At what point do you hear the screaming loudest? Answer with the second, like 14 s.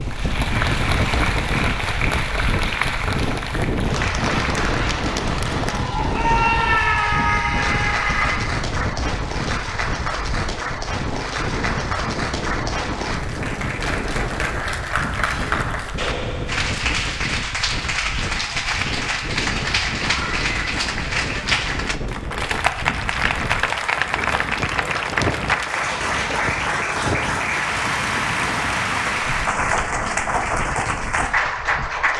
7 s.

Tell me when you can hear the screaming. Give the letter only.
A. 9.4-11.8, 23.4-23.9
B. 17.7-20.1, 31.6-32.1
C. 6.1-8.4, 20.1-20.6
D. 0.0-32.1
C.